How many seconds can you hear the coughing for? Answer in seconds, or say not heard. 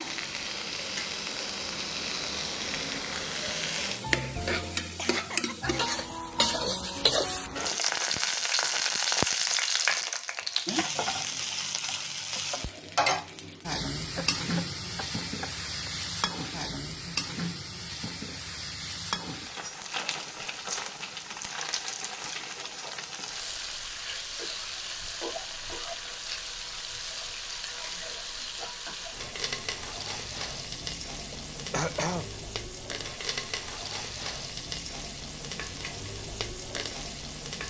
5 s.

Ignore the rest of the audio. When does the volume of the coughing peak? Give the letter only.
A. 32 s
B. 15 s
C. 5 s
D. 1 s
A.